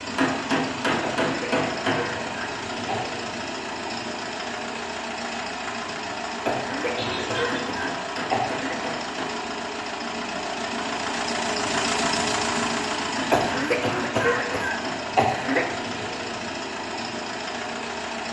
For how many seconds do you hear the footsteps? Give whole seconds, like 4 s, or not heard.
not heard.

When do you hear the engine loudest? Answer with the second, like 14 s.
12 s.